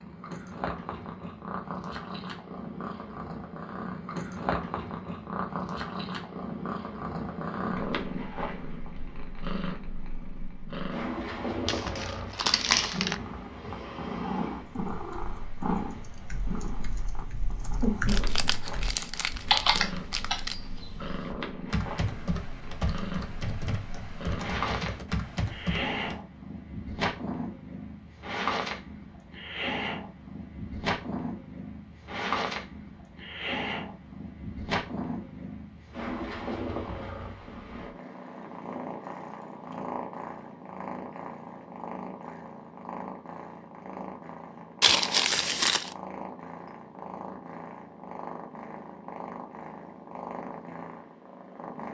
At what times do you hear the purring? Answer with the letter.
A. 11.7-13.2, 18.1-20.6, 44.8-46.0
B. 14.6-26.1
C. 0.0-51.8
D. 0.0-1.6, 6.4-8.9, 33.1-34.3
C.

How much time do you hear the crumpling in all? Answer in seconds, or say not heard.
5 s.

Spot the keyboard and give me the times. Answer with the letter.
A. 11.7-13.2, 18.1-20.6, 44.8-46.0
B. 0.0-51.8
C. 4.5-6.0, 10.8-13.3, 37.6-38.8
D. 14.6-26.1
D.